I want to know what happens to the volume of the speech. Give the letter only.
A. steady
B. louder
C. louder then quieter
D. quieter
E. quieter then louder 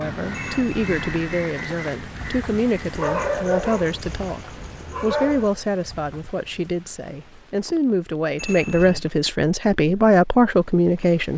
B.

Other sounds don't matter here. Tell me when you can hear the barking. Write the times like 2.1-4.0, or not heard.
2.9-5.5.